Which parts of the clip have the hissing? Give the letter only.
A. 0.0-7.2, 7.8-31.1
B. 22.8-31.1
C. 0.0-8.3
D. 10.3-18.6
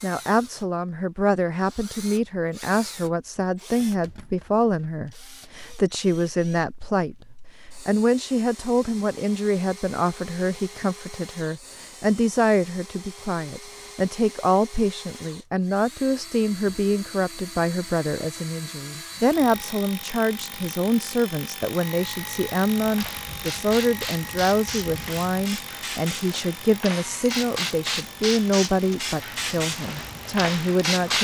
B.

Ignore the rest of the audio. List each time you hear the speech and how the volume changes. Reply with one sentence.
The speech can be heard from 0.0 to 7.2 s, at a steady volume; and from 7.8 to 31.1 s, at a steady volume.